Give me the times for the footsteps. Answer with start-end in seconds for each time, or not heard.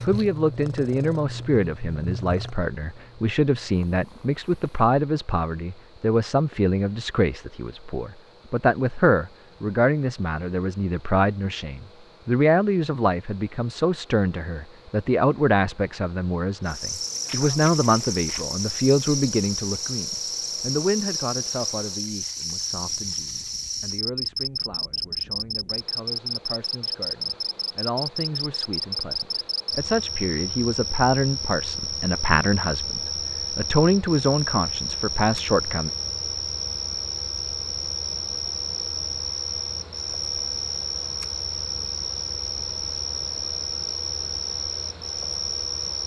not heard.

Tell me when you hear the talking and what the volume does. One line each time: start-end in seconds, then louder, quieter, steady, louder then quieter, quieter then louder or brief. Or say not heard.
0.0-35.9 quieter then louder.